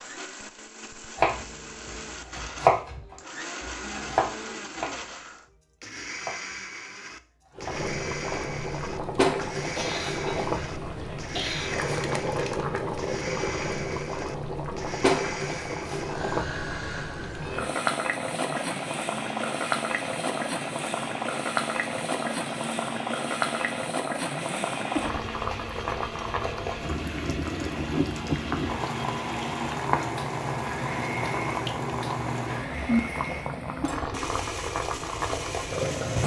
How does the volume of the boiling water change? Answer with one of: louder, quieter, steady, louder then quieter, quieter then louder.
steady.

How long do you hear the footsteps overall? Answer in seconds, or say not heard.
not heard.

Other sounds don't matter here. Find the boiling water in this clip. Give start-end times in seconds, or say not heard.
7.5-36.2.